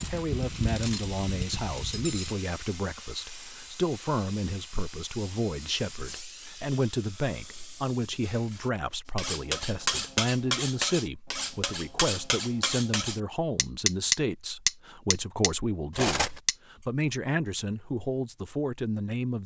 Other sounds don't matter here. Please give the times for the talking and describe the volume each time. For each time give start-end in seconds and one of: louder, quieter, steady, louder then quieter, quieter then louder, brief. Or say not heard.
0.1-19.4 steady.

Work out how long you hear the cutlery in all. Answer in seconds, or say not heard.
10 s.